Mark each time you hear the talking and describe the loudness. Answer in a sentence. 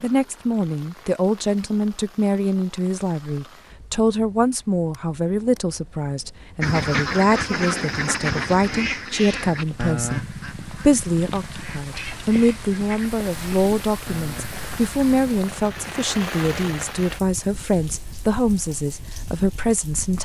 You can hear the talking from 0.0 to 20.1 s, at a steady volume.